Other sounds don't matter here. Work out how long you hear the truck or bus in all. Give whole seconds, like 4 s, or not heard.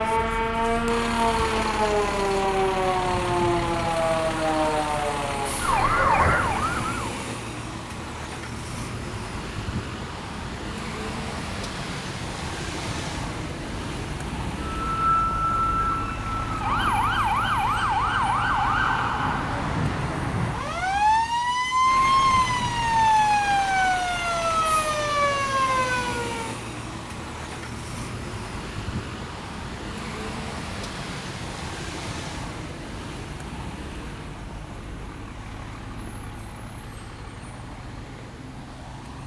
39 s.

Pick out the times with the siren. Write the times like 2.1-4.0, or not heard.
0.0-7.1, 14.8-26.6.